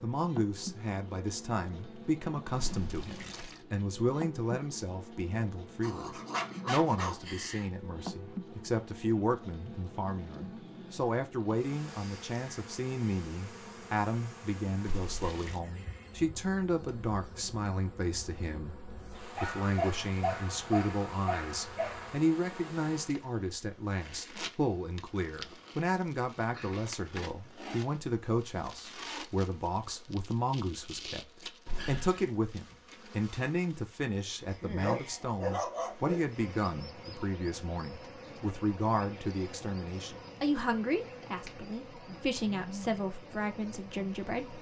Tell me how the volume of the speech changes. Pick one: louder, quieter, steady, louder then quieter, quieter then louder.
steady.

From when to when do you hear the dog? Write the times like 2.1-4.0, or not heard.
5.8-7.7, 19.4-22.2, 34.8-36.2.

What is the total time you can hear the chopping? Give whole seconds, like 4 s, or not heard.
not heard.